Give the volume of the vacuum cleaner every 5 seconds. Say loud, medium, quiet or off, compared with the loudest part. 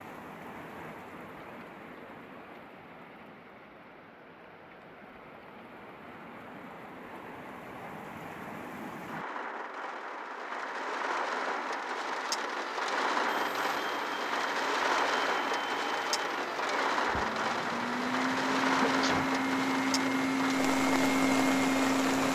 off, off, quiet, medium, loud.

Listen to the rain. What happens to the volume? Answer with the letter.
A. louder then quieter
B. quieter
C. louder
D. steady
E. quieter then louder
C.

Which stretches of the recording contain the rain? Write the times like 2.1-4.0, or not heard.
0.0-22.3.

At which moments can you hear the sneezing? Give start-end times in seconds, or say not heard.
18.8-19.4.